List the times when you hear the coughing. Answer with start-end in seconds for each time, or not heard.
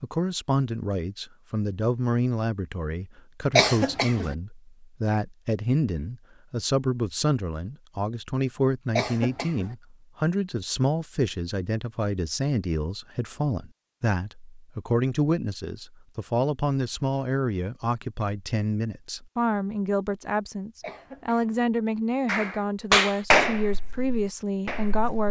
3.5-4.3, 8.9-9.8, 20.8-21.6.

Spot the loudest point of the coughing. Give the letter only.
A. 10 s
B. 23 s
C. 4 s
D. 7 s
C.